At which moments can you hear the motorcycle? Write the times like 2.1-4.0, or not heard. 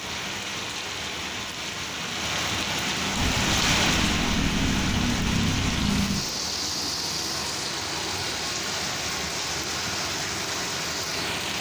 3.1-6.2.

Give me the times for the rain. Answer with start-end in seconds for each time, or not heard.
0.0-11.5.